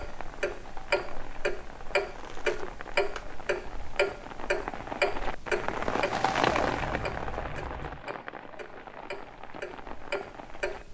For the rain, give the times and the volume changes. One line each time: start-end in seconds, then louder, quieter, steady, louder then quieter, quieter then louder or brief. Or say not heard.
0.0-10.8 louder then quieter.